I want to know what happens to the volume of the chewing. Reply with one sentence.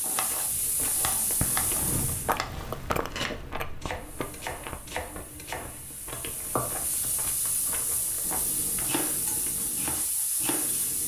The volume of the chewing goes down.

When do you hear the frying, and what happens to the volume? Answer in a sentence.
You can hear the frying briefly from 0.0 to 2.4 s; and from 3.9 to 11.0 s, getting louder.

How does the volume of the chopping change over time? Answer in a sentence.
The volume of the chopping stays about the same.